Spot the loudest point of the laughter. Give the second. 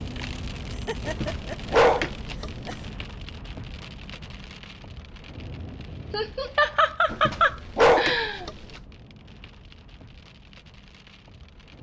7 s.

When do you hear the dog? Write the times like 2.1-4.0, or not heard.
1.1-2.8, 7.1-8.6.